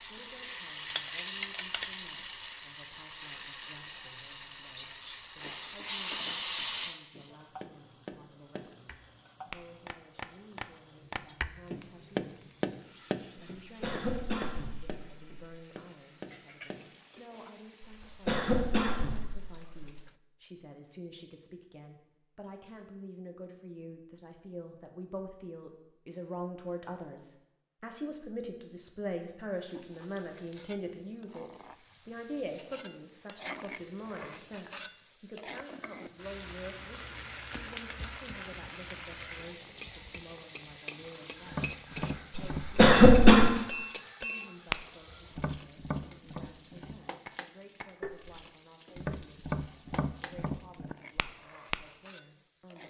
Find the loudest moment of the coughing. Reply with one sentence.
The loudest moment of the coughing is at 43 seconds.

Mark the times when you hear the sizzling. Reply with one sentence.
You can hear the sizzling from 0.0 to 20.2 s and from 29.6 to 52.8 s.